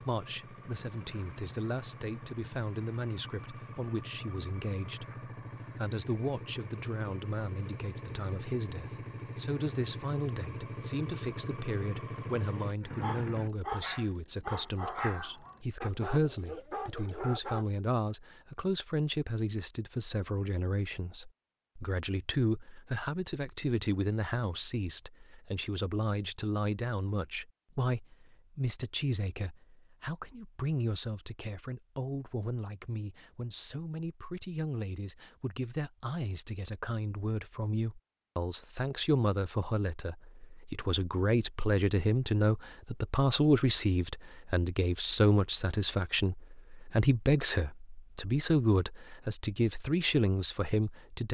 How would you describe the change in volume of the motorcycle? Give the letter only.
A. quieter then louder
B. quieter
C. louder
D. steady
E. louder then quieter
C.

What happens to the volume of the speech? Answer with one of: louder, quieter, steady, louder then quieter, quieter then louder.
louder.